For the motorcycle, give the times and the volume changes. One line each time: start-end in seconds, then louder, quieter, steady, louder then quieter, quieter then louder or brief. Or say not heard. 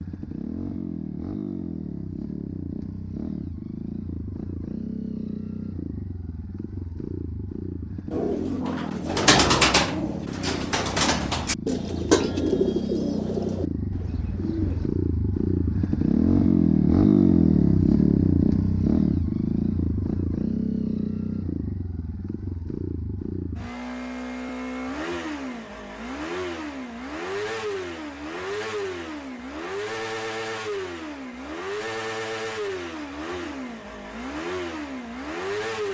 0.0-35.8 louder then quieter.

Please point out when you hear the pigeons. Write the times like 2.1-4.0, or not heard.
8.1-14.9.